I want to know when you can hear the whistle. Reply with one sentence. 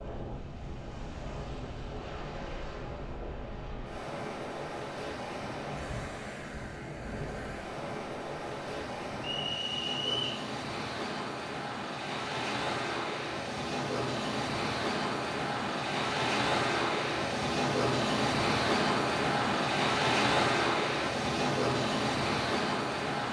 The whistle can be heard from 9.2 to 10.4 s.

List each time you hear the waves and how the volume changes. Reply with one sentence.
You can hear the waves from 0.0 to 23.2 s, getting louder.